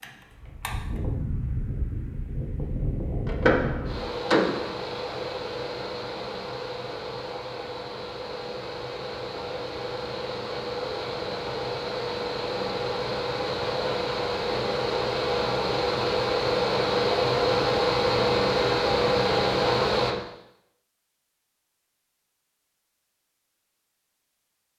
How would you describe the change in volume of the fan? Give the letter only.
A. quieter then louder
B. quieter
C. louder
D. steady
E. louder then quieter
C.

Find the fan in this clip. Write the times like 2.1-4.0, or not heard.
0.0-20.1.